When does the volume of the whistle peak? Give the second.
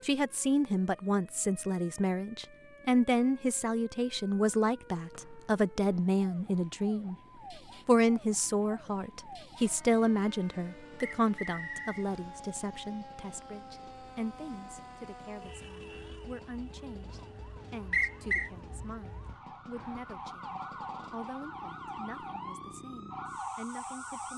18 s.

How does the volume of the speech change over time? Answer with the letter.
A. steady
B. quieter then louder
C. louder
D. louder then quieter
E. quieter
E.